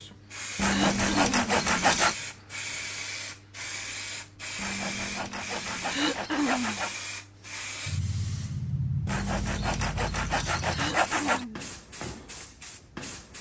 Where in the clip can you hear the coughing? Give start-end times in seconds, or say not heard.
0.7-1.4, 5.9-6.8, 10.7-11.7.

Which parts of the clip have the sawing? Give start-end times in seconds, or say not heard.
0.6-2.1, 4.5-7.0, 9.1-11.4.